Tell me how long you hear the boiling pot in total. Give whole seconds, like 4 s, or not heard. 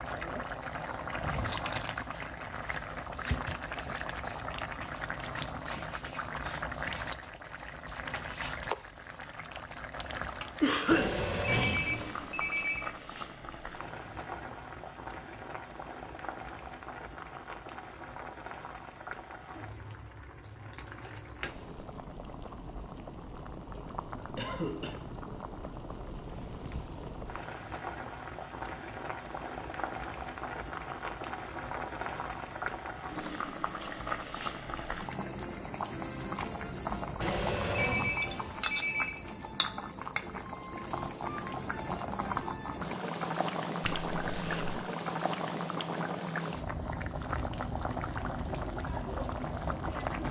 50 s.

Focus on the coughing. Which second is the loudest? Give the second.
11 s.